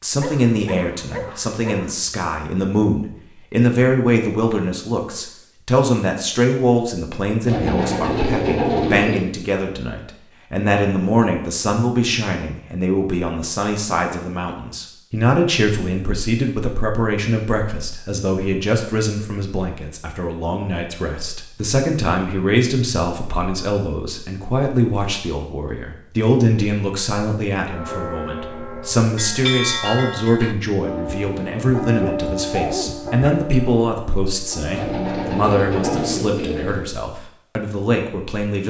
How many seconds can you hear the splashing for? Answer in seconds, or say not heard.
not heard.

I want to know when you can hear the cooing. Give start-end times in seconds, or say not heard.
7.5-9.2, 34.7-36.9.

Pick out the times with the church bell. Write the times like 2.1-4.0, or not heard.
27.6-36.2.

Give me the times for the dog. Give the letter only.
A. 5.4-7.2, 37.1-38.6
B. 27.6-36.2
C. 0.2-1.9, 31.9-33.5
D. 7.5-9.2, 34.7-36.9
C.